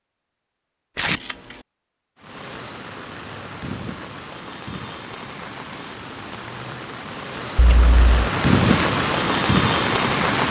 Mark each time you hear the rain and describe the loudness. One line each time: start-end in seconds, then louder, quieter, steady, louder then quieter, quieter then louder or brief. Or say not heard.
2.1-10.4 louder.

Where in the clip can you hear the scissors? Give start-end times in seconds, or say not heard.
1.1-1.6, 7.5-8.2.